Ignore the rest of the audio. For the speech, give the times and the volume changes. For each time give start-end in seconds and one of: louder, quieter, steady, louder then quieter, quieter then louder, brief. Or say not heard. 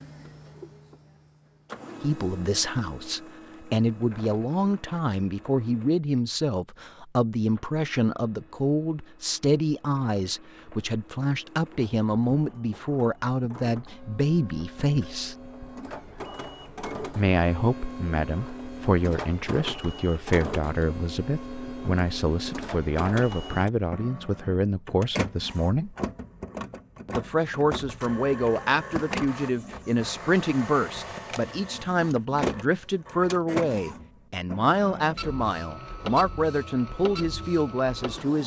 2.0-15.3 steady
17.1-25.9 steady
27.1-38.4 steady.